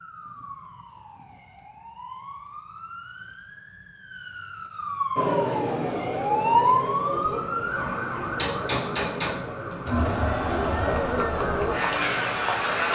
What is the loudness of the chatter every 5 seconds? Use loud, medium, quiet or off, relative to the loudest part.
off, medium, loud.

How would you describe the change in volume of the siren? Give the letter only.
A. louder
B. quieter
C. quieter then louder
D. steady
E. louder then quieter
E.